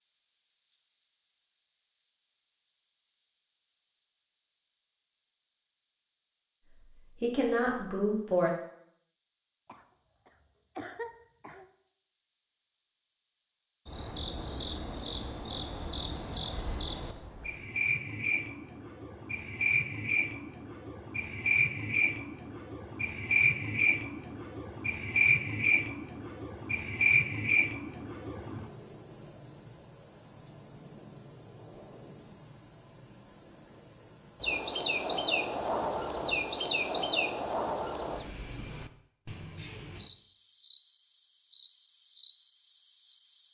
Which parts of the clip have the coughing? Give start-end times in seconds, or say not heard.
9.7-11.7.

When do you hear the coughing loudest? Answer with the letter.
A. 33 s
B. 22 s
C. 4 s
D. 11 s
D.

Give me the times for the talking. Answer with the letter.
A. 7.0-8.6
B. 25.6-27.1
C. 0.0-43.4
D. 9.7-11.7
A.